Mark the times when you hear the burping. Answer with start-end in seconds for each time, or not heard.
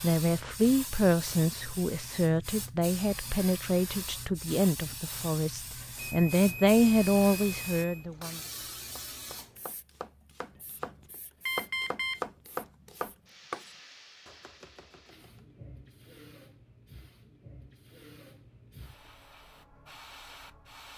not heard.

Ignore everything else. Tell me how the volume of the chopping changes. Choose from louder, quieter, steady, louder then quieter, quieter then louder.
louder then quieter.